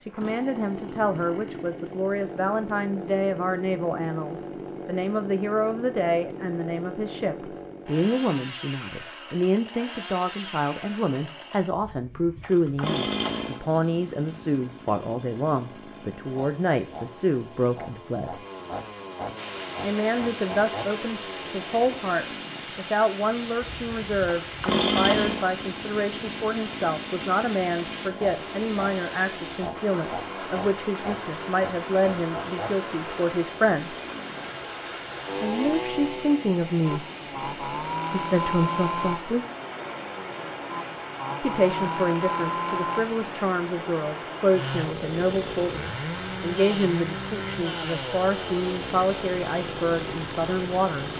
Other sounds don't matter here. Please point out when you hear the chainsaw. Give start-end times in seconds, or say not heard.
0.1-51.1.